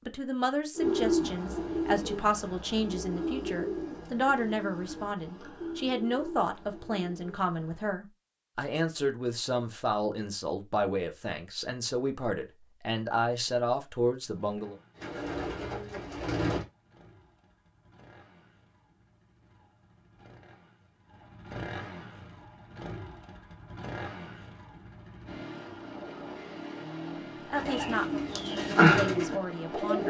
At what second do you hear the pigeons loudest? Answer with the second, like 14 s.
29 s.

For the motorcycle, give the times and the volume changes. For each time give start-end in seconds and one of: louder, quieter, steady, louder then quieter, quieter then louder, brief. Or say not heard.
14.3-30.0 louder.